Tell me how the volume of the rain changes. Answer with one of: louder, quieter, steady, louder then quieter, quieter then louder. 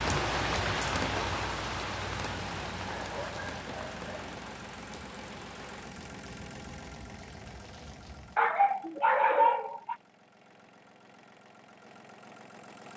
quieter.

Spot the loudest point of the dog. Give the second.
9 s.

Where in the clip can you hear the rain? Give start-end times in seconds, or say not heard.
0.0-8.4.